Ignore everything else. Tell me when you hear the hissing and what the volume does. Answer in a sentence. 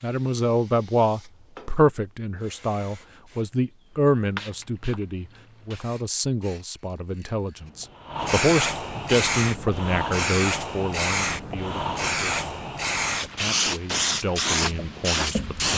The hissing can be heard from 0.0 to 15.7 s, getting louder.